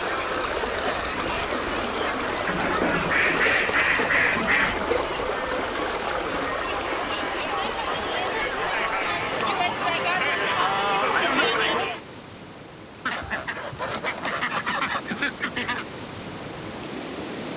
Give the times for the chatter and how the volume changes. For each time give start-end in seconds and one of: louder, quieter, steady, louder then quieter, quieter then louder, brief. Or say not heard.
0.0-12.0 louder.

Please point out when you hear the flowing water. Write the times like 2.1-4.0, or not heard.
0.0-17.5.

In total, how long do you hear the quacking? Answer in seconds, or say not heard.
5 s.